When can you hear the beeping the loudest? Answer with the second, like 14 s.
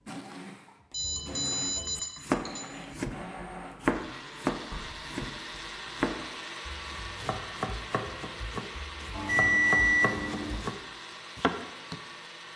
10 s.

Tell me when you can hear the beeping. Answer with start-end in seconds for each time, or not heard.
0.9-2.6, 9.1-10.6.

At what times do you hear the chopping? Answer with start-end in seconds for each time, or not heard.
1.0-10.8, 11.3-11.9.